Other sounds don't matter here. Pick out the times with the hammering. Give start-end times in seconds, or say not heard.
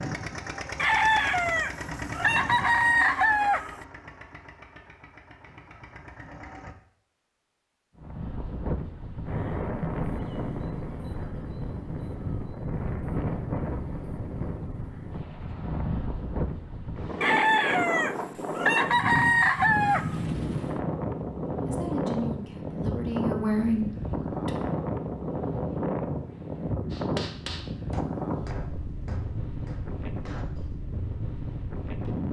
26.9-30.8.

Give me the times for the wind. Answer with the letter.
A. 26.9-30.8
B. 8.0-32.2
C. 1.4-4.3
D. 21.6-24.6
B.